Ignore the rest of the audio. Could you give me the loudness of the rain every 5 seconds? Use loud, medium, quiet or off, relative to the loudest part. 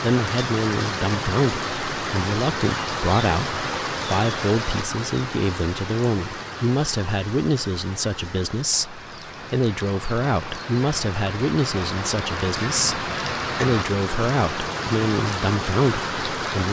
loud, medium, loud, loud.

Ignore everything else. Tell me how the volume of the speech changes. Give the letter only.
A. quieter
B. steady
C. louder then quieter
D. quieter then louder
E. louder
B.